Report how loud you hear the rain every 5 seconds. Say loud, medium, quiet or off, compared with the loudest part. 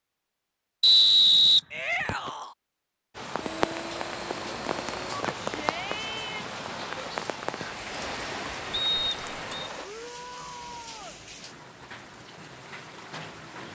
loud, loud, medium.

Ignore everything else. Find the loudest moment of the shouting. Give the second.
2 s.